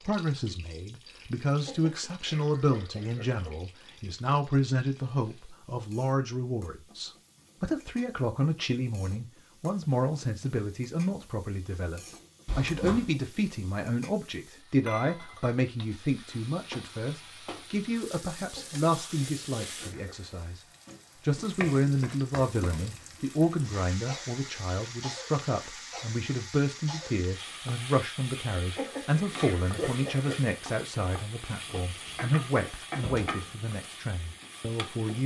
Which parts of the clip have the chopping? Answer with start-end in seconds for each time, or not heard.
31.6-33.5.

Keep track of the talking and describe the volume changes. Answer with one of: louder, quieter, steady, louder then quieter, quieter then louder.
steady.